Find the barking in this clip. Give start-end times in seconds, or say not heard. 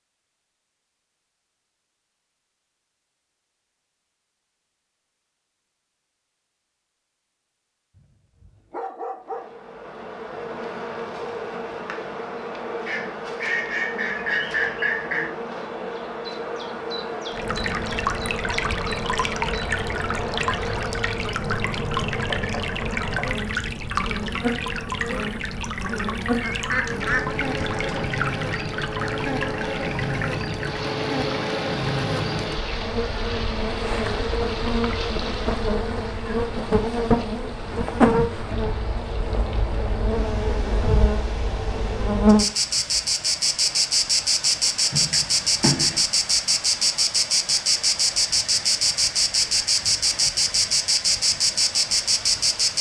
8.0-9.5.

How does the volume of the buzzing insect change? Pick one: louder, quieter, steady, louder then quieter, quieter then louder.
louder.